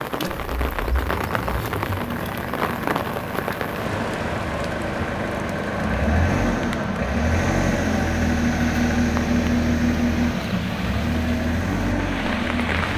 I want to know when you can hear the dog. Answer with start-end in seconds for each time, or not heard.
not heard.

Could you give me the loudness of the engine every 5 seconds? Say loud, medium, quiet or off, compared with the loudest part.
medium, loud, loud.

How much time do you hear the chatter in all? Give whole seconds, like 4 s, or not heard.
not heard.